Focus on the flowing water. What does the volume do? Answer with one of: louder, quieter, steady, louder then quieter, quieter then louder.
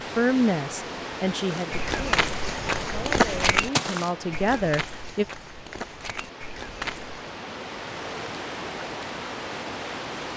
quieter then louder.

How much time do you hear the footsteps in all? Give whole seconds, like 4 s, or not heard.
6 s.